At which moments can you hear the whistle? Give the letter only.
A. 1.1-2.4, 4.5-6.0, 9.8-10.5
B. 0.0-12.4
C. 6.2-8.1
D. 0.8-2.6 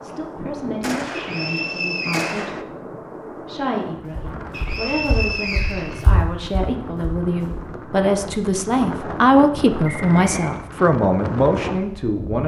A.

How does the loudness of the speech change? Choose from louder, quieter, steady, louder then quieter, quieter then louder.
louder.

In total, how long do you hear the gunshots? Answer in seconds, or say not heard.
2 s.